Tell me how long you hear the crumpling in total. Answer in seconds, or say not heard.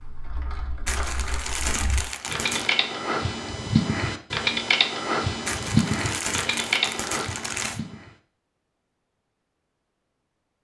4 s.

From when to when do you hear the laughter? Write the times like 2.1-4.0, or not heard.
not heard.